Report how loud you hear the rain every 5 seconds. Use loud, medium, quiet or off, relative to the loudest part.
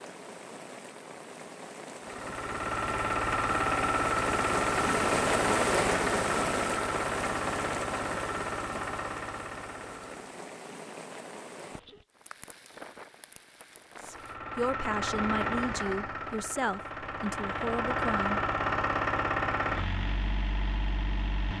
medium, loud, quiet, off, off.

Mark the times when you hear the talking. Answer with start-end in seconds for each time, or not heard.
14.0-18.4.